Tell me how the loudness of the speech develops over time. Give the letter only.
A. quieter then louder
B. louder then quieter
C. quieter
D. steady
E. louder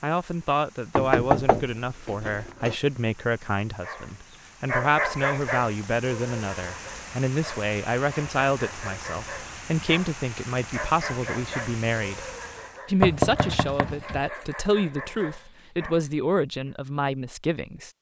D.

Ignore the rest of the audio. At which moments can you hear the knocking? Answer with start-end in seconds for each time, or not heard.
0.9-2.8, 13.0-14.3.